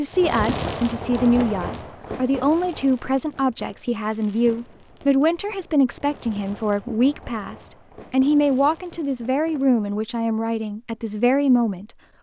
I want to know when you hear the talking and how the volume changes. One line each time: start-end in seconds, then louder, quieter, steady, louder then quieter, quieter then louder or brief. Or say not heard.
0.0-11.9 steady.